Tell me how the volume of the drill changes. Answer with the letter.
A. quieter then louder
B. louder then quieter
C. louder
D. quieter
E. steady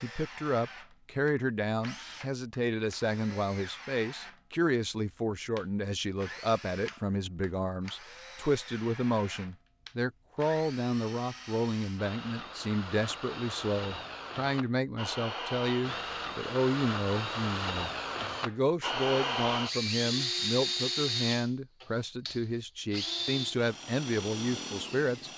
C.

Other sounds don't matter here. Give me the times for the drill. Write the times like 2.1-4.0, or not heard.
0.0-25.3.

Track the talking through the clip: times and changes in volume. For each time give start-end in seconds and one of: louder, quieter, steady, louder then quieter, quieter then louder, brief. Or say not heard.
0.0-25.3 steady.